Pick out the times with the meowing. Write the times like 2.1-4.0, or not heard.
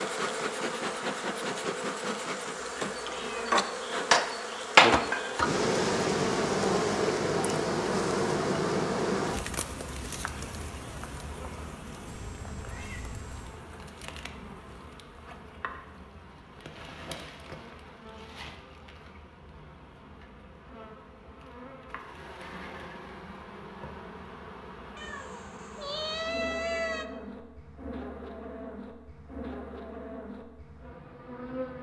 2.5-3.5, 12.1-13.7, 24.9-27.1.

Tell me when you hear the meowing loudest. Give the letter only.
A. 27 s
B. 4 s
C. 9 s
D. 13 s
A.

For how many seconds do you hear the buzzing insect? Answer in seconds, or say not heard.
32 s.